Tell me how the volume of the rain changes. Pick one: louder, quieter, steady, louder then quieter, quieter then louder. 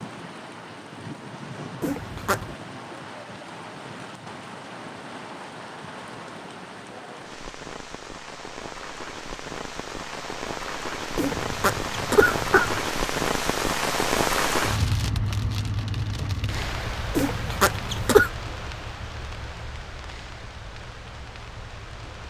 louder then quieter.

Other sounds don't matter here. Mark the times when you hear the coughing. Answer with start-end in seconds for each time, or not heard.
1.8-2.5, 11.2-12.8, 17.1-18.3.